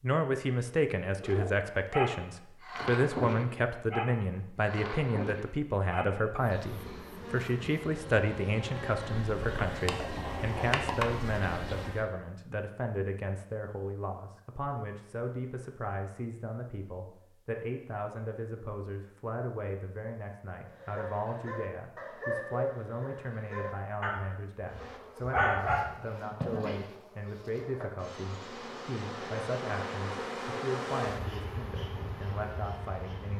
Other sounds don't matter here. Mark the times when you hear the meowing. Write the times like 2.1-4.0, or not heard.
not heard.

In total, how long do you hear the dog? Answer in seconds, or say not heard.
10 s.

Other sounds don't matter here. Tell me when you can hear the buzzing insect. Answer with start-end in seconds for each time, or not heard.
6.3-12.1, 24.6-33.3.